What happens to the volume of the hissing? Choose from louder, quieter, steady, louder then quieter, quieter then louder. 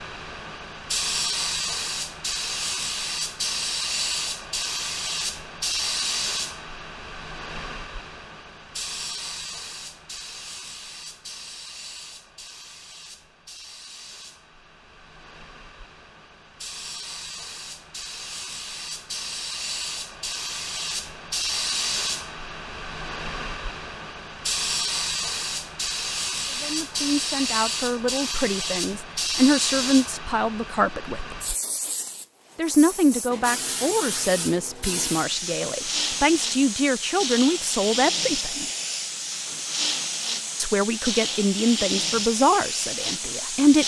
quieter then louder.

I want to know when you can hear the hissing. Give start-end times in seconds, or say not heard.
0.0-43.8.